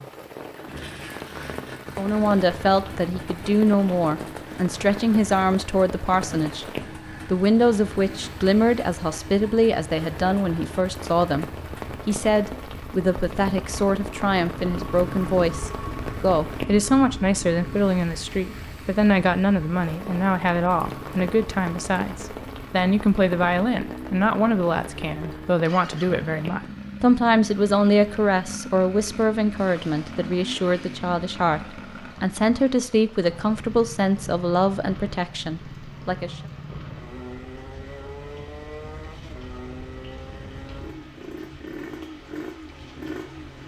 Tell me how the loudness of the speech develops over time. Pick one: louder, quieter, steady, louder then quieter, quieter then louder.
steady.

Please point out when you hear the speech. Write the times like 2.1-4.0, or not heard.
1.9-6.7, 7.2-11.4, 12.1-36.4.